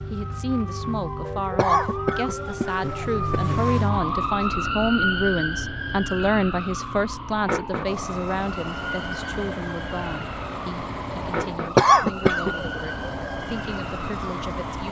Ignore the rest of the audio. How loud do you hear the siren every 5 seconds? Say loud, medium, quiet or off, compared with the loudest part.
loud, loud, medium.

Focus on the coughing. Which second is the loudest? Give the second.
12 s.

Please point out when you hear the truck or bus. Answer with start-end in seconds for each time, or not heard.
2.7-4.5, 7.8-14.8.